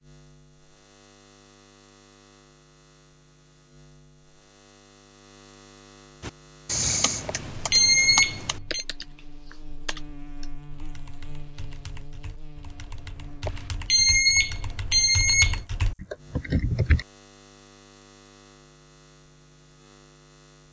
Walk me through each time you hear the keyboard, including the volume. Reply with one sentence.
The keyboard can be heard from 6.2 to 17.1 s, getting quieter then louder.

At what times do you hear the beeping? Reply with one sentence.
You can hear the beeping from 7.2 to 8.8 s and from 13.4 to 15.6 s.